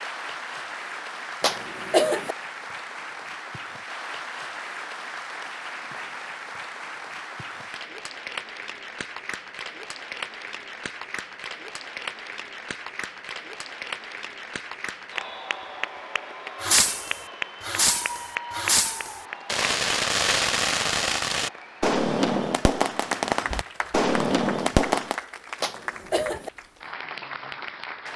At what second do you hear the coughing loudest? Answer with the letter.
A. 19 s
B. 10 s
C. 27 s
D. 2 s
D.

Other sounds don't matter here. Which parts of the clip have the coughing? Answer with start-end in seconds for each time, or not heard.
1.4-2.4, 25.6-26.5.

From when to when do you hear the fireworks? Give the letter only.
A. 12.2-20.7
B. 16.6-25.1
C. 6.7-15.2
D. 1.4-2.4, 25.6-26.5
B.